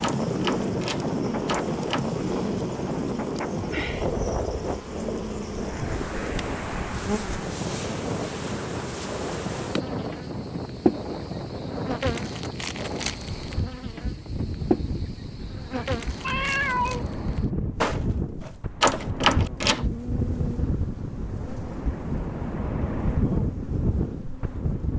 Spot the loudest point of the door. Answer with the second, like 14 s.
19 s.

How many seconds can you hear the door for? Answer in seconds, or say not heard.
3 s.